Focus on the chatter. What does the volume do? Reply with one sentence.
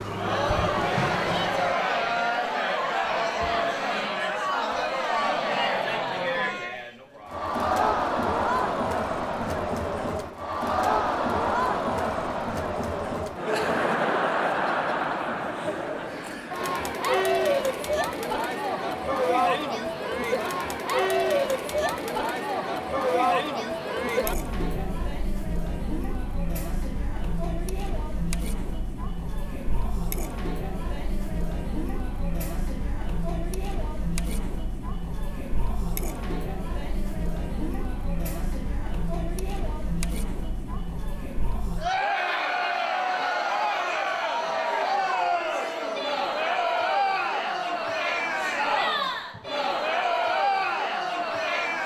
The loudness of the chatter goes down, then up.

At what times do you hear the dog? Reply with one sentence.
You can't hear the dog here.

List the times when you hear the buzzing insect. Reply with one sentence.
The buzzing insect can be heard from 0.0 to 1.8 s.